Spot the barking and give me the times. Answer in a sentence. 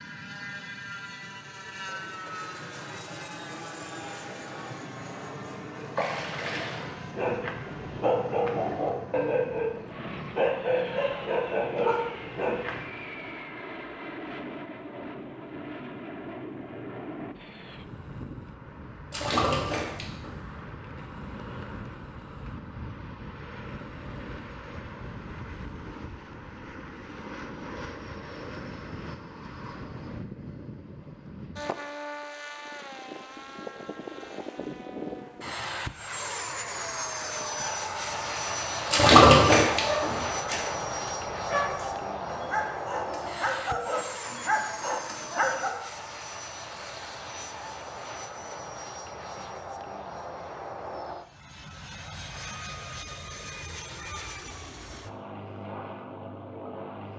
The barking can be heard from 7.0 to 12.9 s and from 39.8 to 45.8 s.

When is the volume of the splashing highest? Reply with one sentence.
The loudest moment of the splashing is at 39 seconds.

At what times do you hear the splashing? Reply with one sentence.
The splashing can be heard from 6.0 to 7.0 s, from 19.1 to 20.4 s and from 38.9 to 40.2 s.